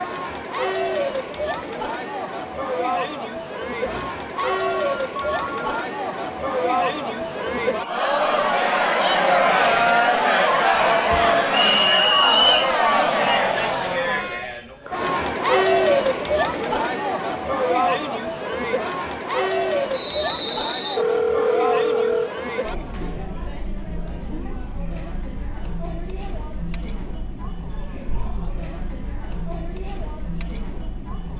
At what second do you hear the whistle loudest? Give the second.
12 s.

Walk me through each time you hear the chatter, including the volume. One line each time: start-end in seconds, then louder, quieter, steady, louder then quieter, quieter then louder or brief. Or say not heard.
0.0-31.3 louder then quieter.